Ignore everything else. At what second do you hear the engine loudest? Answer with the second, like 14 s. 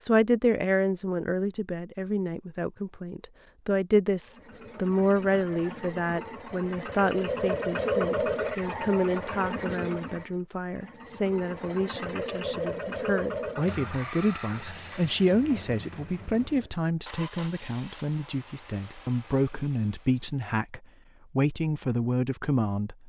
8 s.